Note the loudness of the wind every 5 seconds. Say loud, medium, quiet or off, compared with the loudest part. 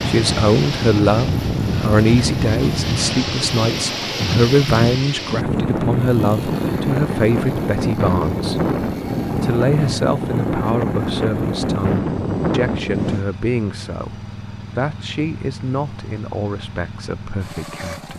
loud, loud, loud, off.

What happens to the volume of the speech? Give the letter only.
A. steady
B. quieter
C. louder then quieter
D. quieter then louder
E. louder
B.